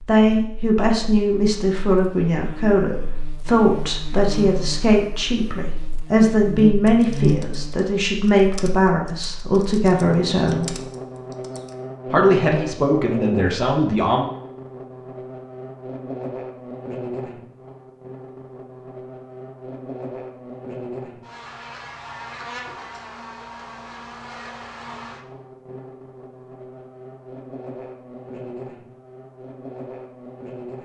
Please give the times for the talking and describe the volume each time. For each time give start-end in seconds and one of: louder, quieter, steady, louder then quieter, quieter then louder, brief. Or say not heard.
0.1-10.8 steady
12.1-14.2 brief.